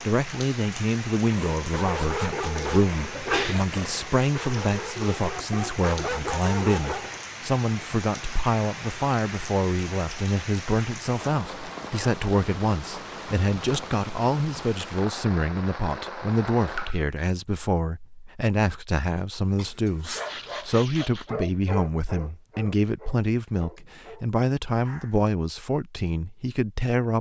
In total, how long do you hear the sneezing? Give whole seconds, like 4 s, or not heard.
2 s.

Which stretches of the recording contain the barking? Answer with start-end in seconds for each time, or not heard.
1.2-7.2, 19.6-25.3.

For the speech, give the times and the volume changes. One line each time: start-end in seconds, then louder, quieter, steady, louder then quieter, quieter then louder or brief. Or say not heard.
0.1-27.1 steady.